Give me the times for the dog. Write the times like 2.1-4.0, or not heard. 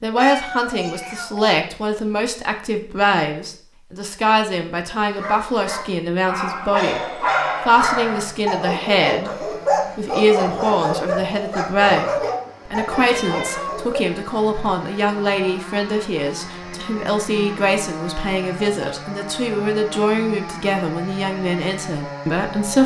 5.0-14.0.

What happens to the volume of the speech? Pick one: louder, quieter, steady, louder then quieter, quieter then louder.
steady.